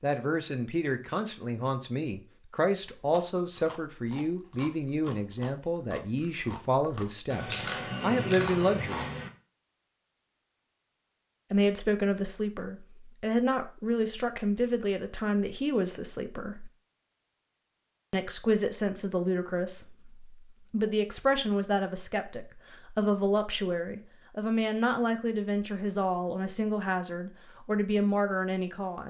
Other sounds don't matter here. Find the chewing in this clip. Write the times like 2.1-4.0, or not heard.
3.0-9.3.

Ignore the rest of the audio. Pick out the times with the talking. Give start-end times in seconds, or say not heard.
0.0-9.1, 11.5-16.7, 18.1-29.0.